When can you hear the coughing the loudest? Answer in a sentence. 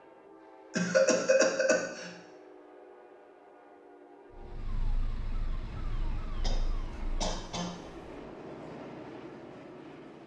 The loudest moment of the coughing is at 1 second.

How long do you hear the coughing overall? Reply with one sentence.
The coughing can be heard for 3 seconds in total.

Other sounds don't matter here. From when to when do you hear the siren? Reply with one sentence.
The siren can be heard from 4.3 to 7.4 s.